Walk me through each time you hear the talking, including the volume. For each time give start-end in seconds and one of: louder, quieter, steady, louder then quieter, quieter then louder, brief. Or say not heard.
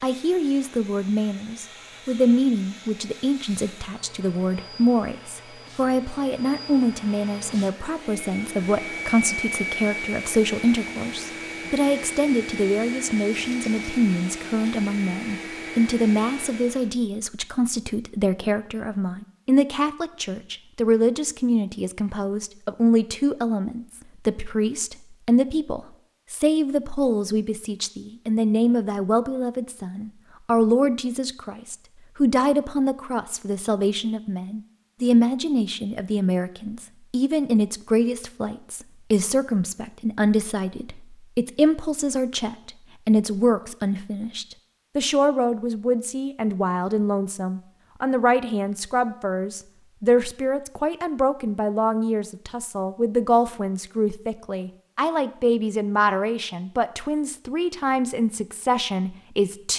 0.0-59.7 steady.